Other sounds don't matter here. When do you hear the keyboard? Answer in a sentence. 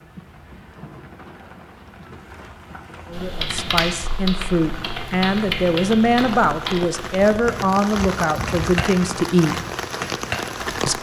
You can hear the keyboard from 3.1 to 10.7 s.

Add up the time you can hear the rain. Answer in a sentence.
The rain can be heard for 11 seconds in total.